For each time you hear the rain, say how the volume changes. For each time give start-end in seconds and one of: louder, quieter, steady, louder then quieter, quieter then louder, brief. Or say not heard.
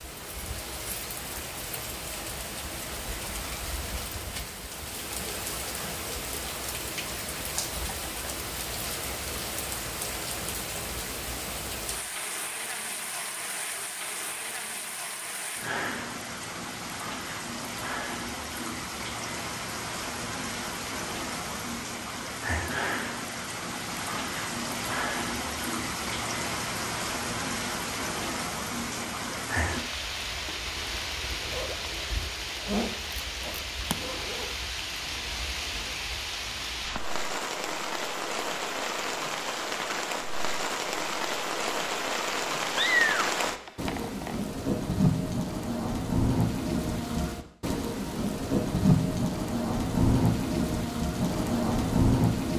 0.0-52.5 louder.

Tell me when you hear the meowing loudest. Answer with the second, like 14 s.
43 s.